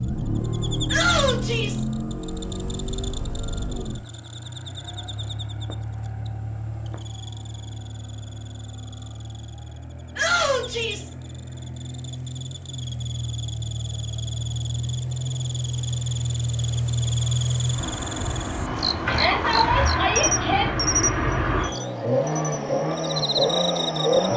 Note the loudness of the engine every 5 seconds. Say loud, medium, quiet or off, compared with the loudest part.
medium, quiet, medium, loud, loud.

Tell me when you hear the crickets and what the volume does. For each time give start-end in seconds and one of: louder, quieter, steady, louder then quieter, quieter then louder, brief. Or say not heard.
0.0-24.3 quieter then louder.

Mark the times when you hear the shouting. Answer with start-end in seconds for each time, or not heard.
0.9-1.9, 10.2-11.1, 19.1-20.7.